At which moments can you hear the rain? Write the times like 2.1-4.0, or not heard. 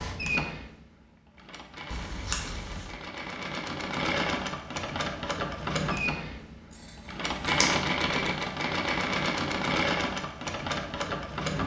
not heard.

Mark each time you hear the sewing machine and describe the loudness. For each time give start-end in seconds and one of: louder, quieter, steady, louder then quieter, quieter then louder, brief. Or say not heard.
0.0-11.6 louder.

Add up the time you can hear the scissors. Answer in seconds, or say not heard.
2 s.